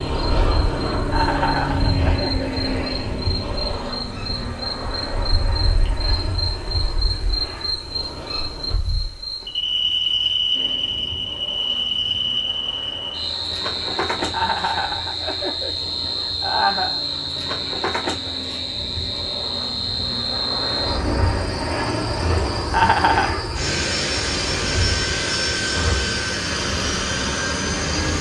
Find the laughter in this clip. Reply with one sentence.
You can hear the laughter from 1.1 to 2.6 s, from 14.3 to 17.0 s and from 22.7 to 23.4 s.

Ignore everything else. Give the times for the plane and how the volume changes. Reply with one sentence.
You can hear the plane from 0.0 to 8.8 s, getting quieter; and from 10.5 to 28.1 s, getting louder.